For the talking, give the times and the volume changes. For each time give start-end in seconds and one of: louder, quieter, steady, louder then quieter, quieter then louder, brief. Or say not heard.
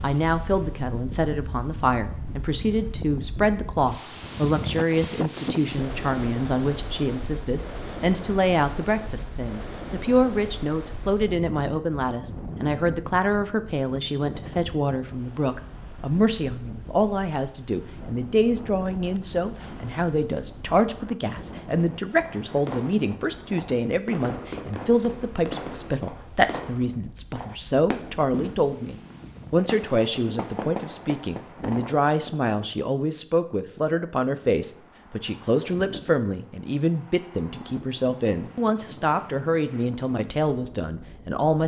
0.0-41.6 steady.